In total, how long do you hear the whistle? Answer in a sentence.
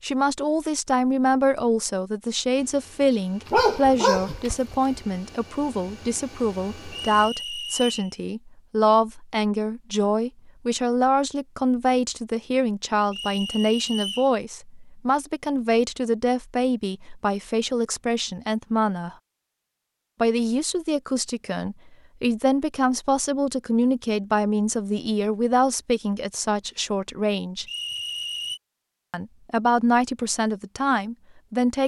You can hear the whistle for 3 seconds altogether.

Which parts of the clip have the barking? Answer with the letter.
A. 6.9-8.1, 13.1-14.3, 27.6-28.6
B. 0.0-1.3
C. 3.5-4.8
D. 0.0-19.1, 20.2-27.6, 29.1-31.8
C.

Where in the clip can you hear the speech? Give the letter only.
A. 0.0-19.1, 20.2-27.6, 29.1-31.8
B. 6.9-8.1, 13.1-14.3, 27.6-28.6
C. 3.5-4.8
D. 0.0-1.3
A.